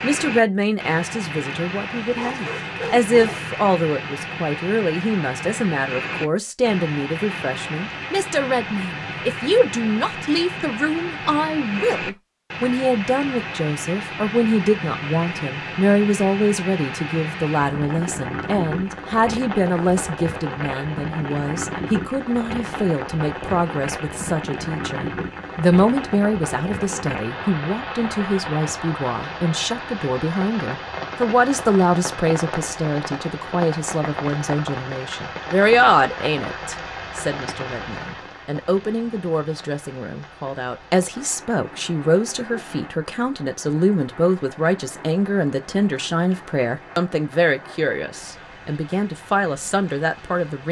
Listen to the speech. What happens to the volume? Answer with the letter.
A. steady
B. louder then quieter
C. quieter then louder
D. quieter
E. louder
A.